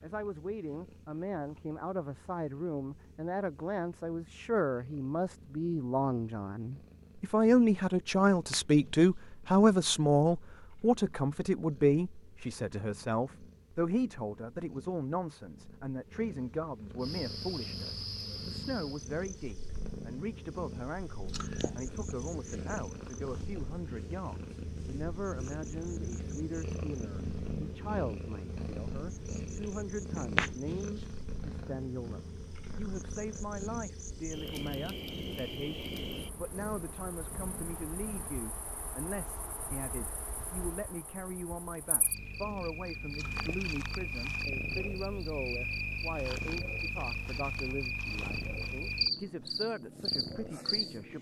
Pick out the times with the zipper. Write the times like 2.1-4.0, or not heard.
not heard.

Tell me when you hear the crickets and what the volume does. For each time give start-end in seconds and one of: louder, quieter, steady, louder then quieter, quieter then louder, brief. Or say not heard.
17.0-51.1 quieter then louder.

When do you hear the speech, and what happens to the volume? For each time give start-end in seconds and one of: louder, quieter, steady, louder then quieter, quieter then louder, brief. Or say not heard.
0.0-51.1 quieter.